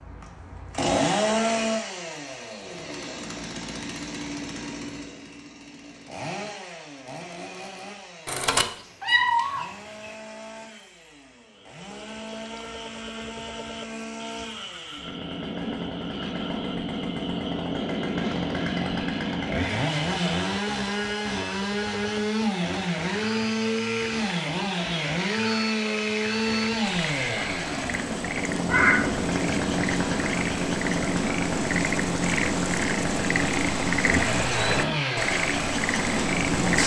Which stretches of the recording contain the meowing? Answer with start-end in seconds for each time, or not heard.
8.2-10.1, 28.6-29.1.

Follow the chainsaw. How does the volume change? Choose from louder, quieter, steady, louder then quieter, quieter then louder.
quieter then louder.